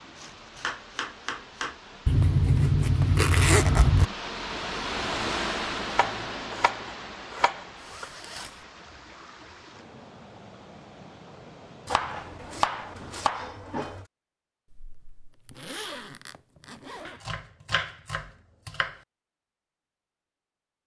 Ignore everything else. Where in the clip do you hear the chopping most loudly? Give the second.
13 s.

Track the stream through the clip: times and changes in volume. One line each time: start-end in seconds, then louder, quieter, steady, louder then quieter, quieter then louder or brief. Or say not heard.
0.0-13.6 louder then quieter.